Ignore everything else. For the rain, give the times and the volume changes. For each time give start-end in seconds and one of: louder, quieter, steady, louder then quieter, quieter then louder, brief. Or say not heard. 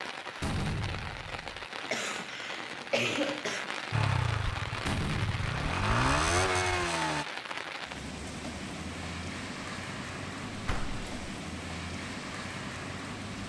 0.0-13.4 steady.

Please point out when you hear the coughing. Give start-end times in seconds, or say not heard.
1.9-3.7.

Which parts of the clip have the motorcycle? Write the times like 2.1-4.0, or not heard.
3.9-7.2.